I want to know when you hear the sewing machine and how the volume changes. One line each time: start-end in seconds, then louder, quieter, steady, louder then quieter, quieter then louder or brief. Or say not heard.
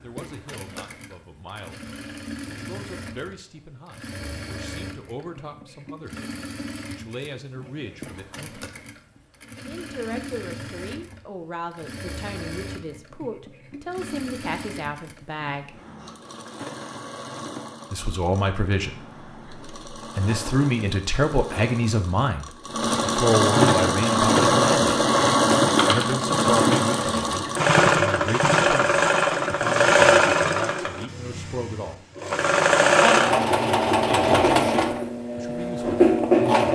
0.0-36.6 louder.